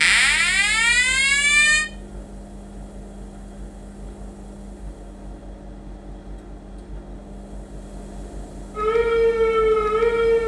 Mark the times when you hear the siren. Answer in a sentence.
The siren can be heard from 0.0 to 1.9 s and from 8.8 to 10.4 s.